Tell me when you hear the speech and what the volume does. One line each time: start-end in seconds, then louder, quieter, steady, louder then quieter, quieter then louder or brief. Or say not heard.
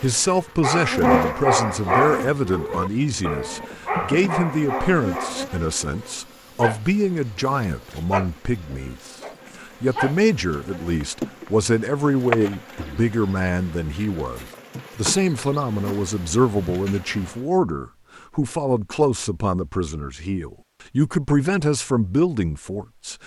0.0-23.2 steady.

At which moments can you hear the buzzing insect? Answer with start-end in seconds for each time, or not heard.
0.0-17.4.